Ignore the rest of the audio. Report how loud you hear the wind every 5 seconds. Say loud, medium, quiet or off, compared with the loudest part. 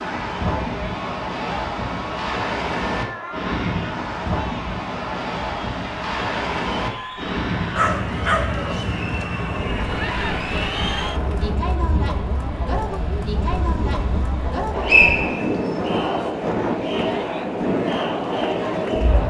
loud, loud, medium, loud.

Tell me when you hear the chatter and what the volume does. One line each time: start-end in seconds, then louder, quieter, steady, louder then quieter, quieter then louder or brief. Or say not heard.
0.0-19.2 louder.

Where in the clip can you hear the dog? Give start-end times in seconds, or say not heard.
7.8-9.2.